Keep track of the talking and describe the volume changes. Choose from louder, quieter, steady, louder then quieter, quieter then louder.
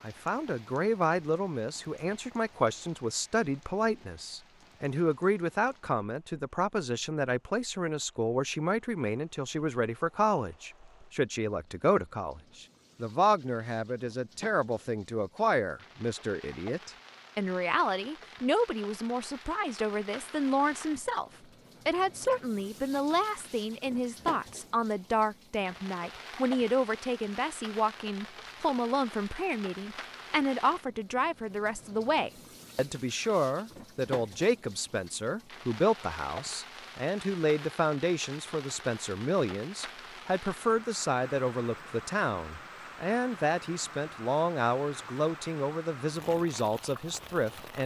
steady.